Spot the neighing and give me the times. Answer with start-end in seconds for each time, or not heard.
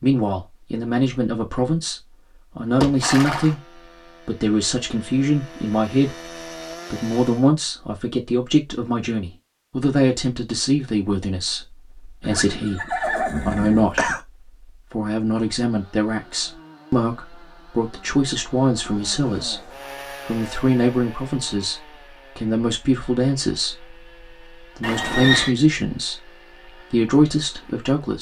2.8-3.5, 12.2-14.2, 24.8-25.6.